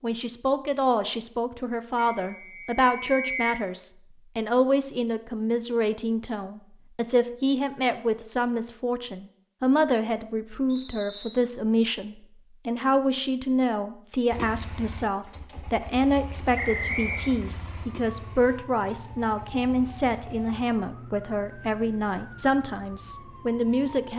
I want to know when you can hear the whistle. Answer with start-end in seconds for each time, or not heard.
1.9-3.6, 10.7-11.3, 16.6-17.4.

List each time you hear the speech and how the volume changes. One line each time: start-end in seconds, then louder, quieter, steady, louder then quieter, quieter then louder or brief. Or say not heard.
0.0-24.1 steady.